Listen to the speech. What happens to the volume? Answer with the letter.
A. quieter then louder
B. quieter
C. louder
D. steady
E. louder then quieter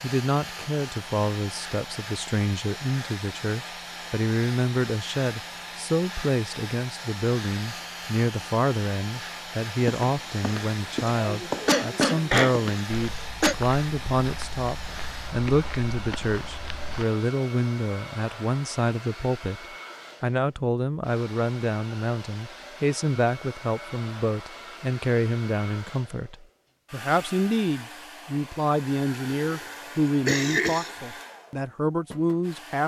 D.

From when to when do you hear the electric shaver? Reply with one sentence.
You can't hear the electric shaver here.